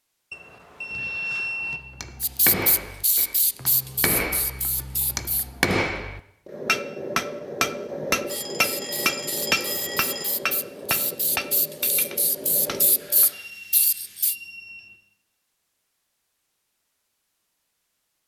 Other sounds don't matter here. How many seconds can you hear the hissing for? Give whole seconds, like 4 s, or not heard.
9 s.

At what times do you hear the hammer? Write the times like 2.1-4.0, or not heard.
1.7-13.3.